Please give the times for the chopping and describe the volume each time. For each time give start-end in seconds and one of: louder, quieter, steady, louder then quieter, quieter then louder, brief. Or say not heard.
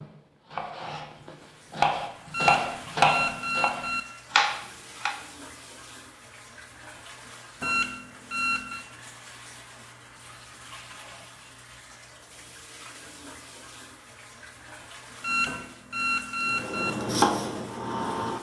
0.0-5.2 louder
16.5-18.3 brief.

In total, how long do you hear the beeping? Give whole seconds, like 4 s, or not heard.
5 s.